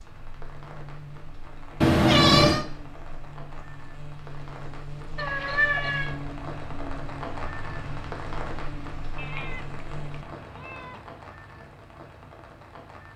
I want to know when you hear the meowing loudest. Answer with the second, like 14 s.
2 s.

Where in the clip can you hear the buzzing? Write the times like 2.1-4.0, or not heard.
0.0-10.2.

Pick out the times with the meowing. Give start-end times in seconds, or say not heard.
1.8-2.6, 5.2-6.2, 9.2-11.0.